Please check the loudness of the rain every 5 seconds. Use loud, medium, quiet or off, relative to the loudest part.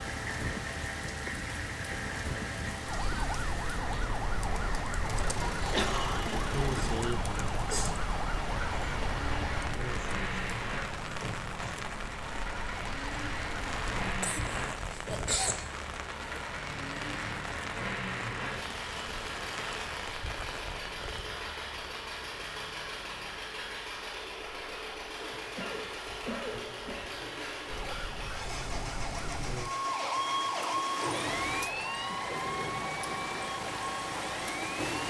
loud, loud, loud, loud, medium, medium, loud.